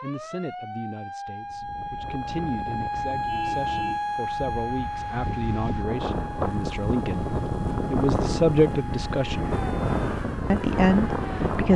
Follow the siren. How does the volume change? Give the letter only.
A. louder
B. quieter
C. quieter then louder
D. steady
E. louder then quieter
E.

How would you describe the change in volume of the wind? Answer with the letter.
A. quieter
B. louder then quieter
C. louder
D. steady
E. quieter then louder
C.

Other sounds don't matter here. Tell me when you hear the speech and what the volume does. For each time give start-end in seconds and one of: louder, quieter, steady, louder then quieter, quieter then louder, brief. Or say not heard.
0.0-9.6 louder
10.5-11.7 brief.